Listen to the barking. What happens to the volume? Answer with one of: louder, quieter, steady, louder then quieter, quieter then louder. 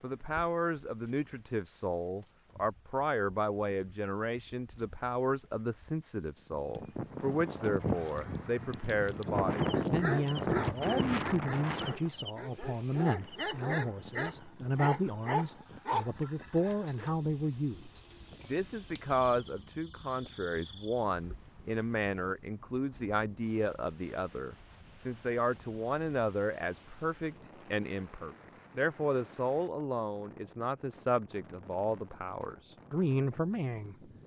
quieter then louder.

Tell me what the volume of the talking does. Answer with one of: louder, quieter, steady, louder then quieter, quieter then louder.
steady.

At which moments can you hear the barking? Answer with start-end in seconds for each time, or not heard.
9.7-17.1.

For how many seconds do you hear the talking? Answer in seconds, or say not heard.
34 s.